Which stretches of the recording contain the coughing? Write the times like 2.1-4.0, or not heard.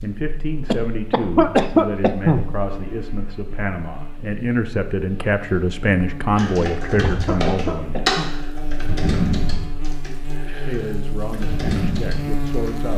0.7-2.5, 6.6-8.3.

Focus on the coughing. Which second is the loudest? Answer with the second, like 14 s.
2 s.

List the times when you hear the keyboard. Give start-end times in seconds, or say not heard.
6.3-12.9.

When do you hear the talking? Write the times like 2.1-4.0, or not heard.
0.0-8.1, 10.4-12.9.